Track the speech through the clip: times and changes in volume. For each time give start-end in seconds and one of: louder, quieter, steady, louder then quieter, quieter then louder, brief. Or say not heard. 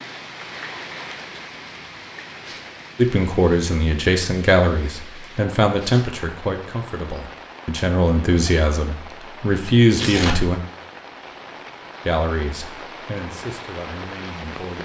3.0-10.6 quieter then louder
12.1-14.7 brief.